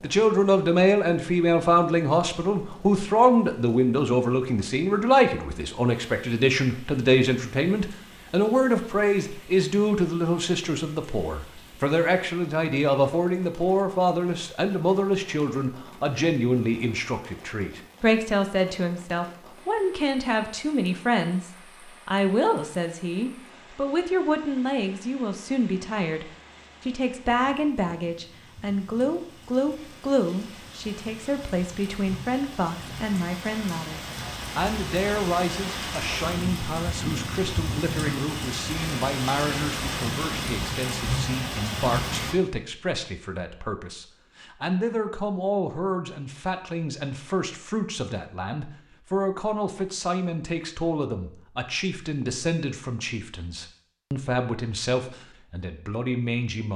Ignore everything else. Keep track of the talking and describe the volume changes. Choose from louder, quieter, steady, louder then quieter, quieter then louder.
quieter.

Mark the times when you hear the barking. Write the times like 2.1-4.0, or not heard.
not heard.